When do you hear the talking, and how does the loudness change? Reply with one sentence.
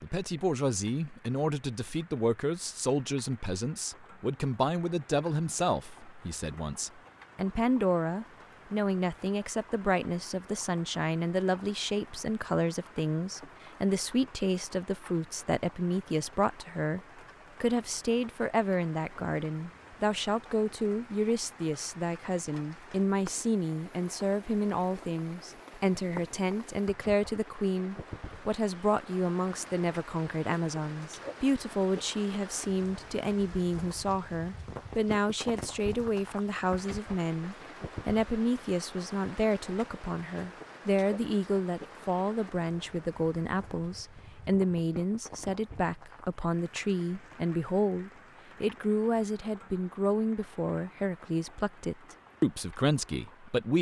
The talking can be heard from 0.0 to 17.0 s, at a steady volume; and from 17.6 to 53.7 s, at a steady volume.